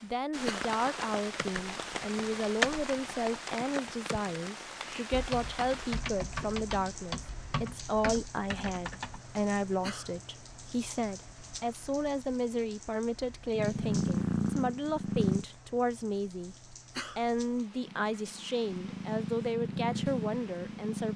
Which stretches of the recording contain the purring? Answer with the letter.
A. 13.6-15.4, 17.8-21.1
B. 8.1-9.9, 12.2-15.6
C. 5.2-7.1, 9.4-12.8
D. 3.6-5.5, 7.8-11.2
A.